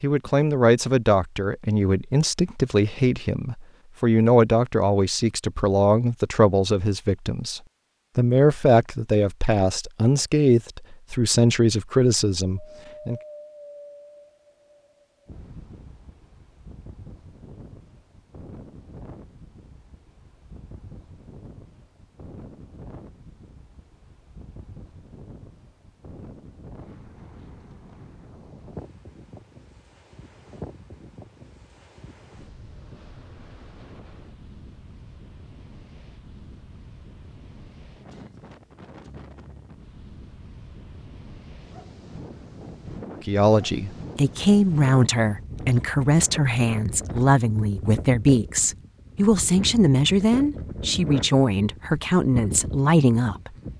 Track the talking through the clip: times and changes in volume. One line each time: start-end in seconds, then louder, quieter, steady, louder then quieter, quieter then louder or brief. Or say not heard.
0.0-13.2 steady
43.2-53.5 steady.